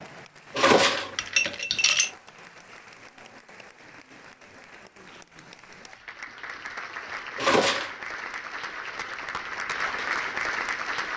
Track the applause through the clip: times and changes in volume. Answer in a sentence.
You can hear the applause from 0.0 to 11.1 s, getting louder.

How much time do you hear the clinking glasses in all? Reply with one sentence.
The clinking glasses can be heard for 2 seconds in total.